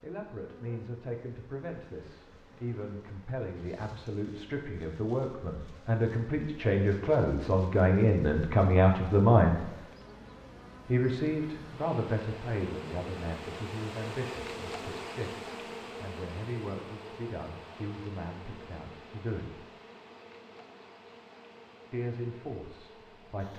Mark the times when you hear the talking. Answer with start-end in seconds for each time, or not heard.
0.0-9.8, 10.8-19.6, 21.9-23.5.